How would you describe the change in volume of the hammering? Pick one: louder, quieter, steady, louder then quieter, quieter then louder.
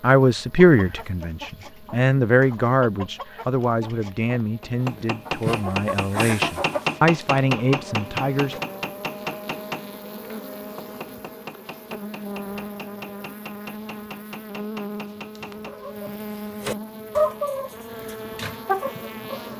quieter.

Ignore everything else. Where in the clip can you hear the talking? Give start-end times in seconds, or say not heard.
0.0-8.6.